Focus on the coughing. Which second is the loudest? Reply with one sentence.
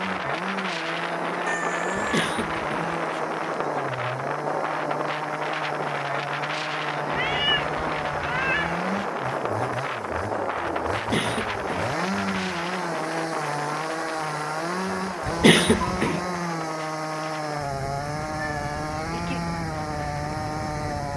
The volume of the coughing peaks at 16 seconds.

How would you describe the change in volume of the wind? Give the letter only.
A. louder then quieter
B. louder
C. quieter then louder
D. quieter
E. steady
D.